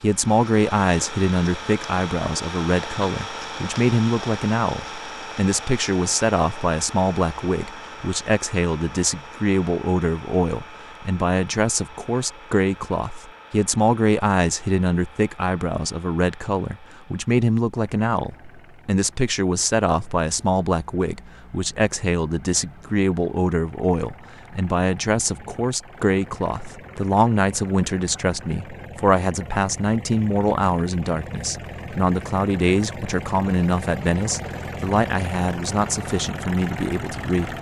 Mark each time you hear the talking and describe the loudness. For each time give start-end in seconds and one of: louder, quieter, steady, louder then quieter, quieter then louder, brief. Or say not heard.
0.0-37.5 steady.